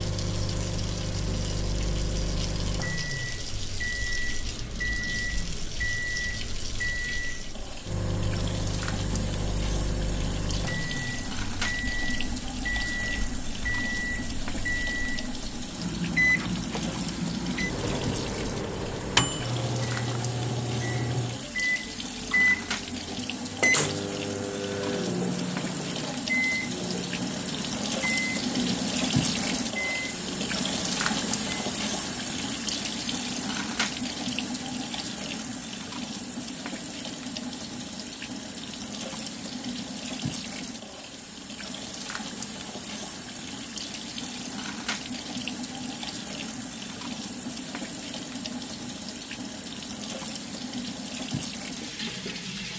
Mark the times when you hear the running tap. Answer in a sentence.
The running tap can be heard from 0.0 to 52.7 s.